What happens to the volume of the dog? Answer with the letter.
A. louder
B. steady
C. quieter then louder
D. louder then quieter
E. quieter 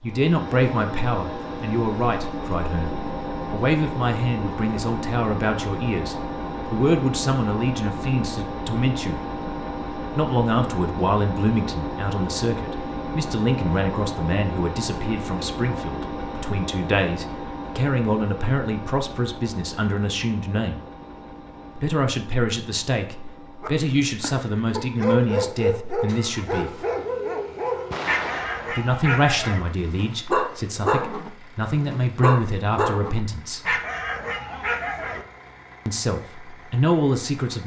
B.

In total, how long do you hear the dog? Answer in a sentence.
You can hear the dog for 12 seconds altogether.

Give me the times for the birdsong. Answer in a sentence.
The birdsong can't be heard in this clip.